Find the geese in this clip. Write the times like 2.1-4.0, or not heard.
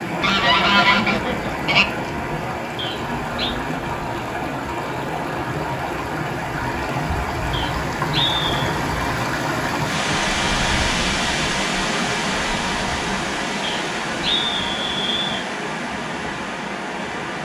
0.2-1.9.